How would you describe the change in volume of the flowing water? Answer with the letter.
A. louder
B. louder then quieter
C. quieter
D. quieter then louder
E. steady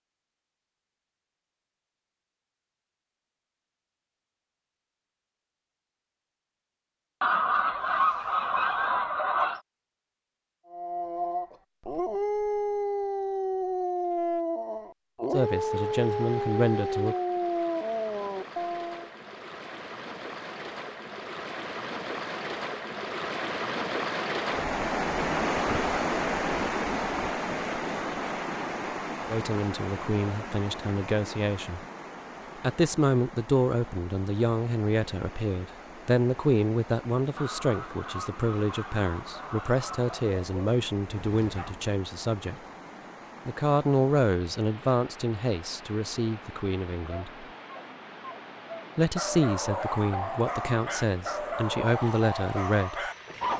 B.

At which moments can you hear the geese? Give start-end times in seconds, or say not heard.
7.2-9.6, 37.4-40.4.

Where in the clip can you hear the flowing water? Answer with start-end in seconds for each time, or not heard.
15.3-53.5.